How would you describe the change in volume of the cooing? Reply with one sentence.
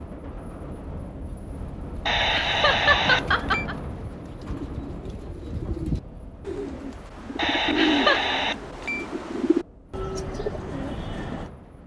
The loudness of the cooing goes up.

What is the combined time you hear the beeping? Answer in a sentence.
The beeping can be heard for 3 seconds in total.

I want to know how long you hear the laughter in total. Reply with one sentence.
The laughter can be heard for 2 seconds in total.